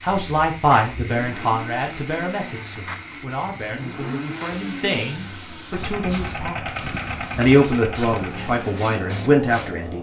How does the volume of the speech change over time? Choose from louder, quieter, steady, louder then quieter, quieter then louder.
quieter then louder.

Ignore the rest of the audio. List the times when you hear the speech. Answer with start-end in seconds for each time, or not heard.
0.0-9.9.